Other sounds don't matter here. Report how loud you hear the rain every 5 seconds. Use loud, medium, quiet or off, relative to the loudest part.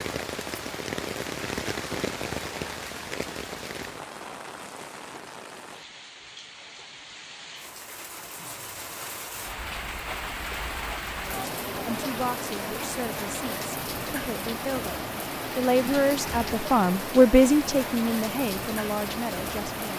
loud, medium, loud, loud.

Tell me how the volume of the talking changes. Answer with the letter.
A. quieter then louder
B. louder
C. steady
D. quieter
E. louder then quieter
E.